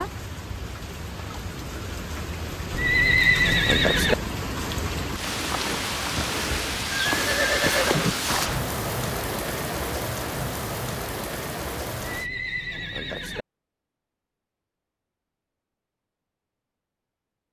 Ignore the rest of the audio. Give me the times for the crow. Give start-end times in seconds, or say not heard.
not heard.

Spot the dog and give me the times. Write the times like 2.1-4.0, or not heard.
not heard.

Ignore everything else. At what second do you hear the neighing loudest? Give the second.
3 s.